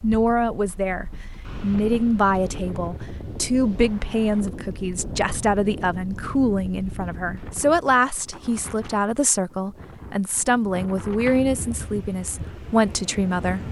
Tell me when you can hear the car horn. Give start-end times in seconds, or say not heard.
not heard.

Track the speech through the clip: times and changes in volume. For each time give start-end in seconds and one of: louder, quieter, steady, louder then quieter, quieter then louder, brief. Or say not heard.
0.0-13.6 steady.